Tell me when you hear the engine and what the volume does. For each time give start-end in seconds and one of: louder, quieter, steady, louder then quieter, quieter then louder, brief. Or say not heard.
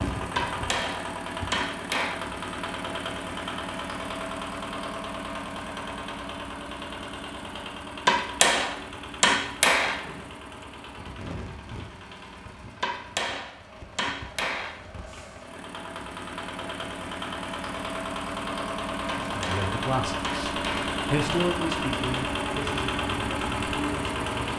0.0-24.5 quieter then louder.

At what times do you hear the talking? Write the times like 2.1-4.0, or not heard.
19.3-24.5.